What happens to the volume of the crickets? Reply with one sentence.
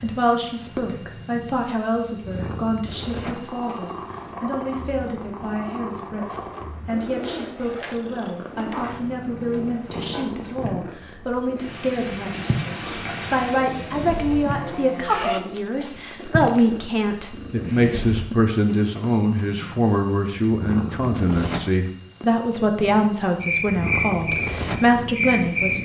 The volume of the crickets goes down, then up.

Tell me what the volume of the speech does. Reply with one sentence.
The volume of the speech goes up.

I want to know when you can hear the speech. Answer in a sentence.
You can hear the speech from 0.0 to 25.8 s.